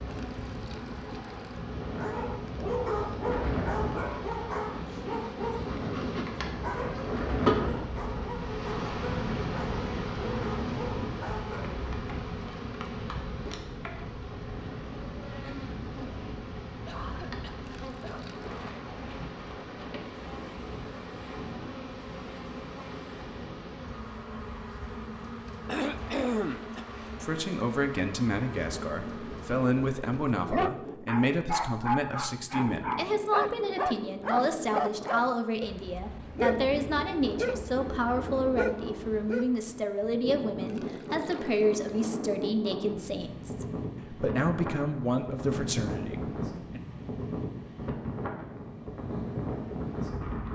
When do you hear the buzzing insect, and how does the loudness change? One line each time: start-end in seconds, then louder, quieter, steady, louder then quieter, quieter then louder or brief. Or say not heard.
0.0-29.9 louder then quieter.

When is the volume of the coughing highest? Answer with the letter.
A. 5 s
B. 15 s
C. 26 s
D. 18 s
C.